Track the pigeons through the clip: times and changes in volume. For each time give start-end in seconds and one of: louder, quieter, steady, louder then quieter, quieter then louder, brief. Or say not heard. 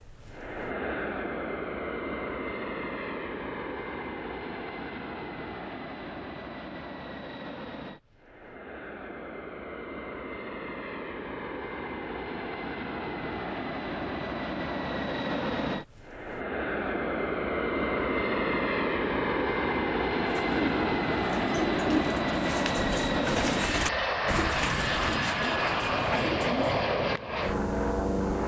20.2-26.9 steady.